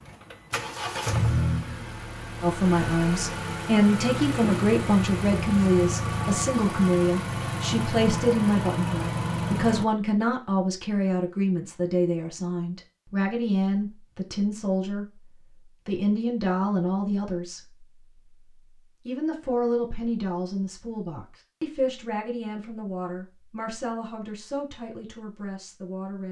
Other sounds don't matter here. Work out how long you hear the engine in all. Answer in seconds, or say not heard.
10 s.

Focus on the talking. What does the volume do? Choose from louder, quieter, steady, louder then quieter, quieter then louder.
quieter.